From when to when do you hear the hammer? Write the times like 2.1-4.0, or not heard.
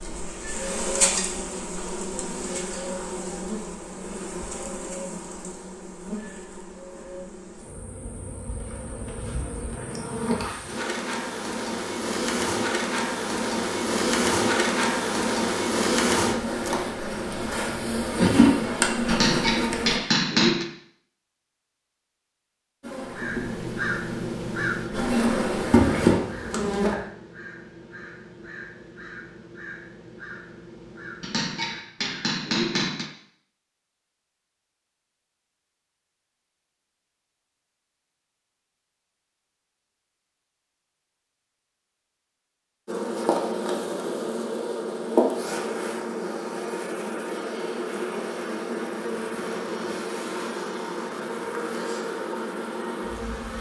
19.1-20.6, 31.2-33.1.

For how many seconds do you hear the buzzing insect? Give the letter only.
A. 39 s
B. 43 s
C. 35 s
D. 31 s
C.